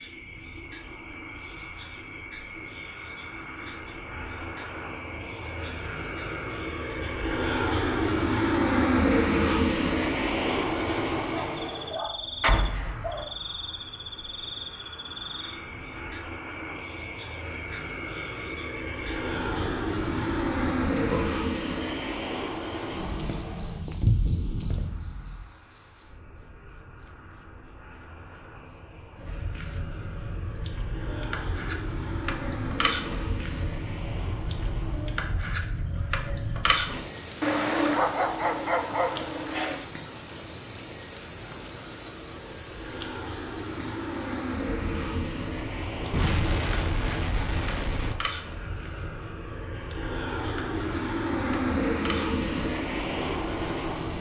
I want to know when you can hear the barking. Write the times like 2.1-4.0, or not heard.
11.3-13.3, 37.4-39.9.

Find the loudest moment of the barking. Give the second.
38 s.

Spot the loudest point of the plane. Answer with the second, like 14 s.
9 s.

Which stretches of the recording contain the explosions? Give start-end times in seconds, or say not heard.
12.4-13.2, 24.0-25.4, 46.1-48.1.